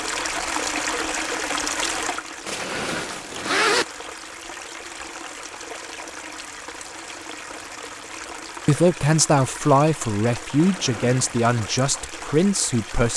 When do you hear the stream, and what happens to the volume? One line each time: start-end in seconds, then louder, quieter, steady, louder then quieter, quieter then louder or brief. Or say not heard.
0.0-13.1 quieter.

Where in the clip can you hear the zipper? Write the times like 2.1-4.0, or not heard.
2.5-3.9, 10.6-11.5.